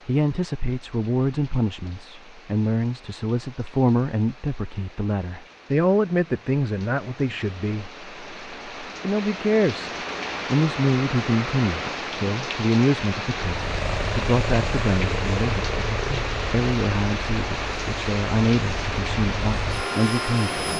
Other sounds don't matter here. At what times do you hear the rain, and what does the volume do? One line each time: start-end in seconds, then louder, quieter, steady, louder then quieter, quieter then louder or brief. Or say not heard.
0.0-20.7 louder.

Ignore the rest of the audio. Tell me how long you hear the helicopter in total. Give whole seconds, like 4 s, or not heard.
7 s.